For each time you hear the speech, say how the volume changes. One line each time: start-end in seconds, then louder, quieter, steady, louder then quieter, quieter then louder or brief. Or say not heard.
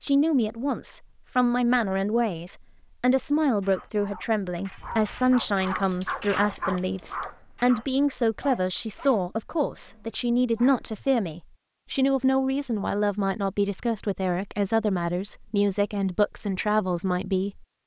0.0-17.6 steady.